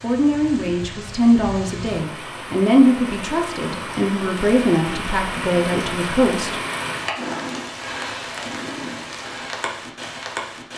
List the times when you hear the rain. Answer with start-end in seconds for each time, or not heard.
0.0-10.7.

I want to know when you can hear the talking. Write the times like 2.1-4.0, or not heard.
0.0-6.6.